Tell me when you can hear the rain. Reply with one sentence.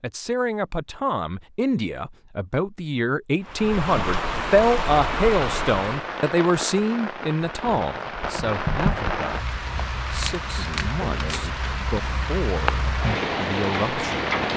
The rain can be heard from 3.4 to 14.5 s.